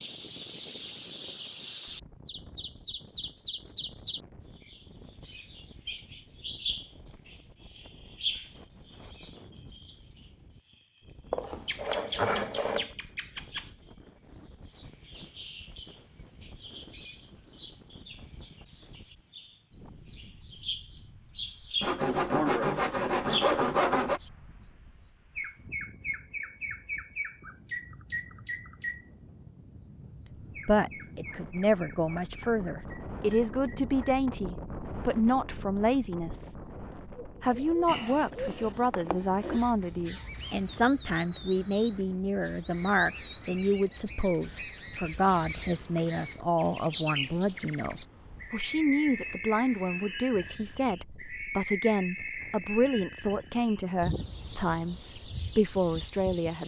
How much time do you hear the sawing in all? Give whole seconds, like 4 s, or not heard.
6 s.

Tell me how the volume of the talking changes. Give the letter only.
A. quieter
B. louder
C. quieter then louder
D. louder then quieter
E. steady
E.